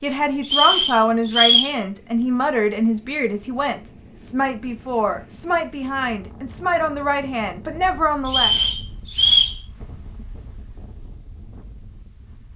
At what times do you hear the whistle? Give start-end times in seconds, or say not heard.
0.5-1.8, 8.2-9.6.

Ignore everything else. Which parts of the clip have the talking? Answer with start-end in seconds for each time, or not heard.
0.0-8.5.